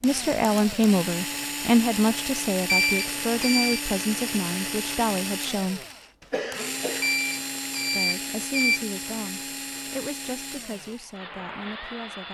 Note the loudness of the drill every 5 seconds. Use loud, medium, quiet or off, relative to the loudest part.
loud, loud, medium.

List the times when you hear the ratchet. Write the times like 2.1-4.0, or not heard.
not heard.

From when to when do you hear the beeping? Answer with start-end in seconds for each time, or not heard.
2.6-3.8, 7.0-8.8.